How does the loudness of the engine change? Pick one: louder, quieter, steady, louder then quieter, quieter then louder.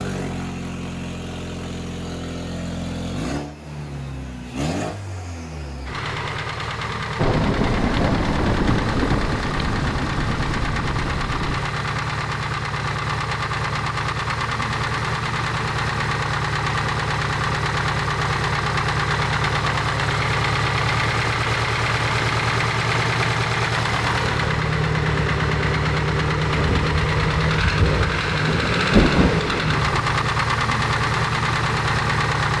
louder.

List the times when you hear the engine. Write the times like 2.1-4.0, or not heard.
0.0-32.5.